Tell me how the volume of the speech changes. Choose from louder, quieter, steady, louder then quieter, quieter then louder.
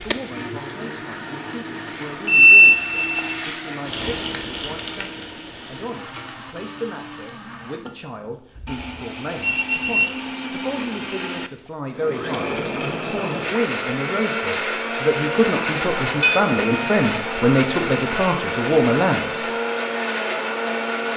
louder.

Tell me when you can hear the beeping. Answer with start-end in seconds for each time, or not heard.
2.2-3.4, 8.6-10.1, 16.2-17.1.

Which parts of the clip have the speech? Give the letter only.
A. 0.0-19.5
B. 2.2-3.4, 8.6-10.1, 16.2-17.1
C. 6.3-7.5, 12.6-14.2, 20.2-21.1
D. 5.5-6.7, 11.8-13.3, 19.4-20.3
A.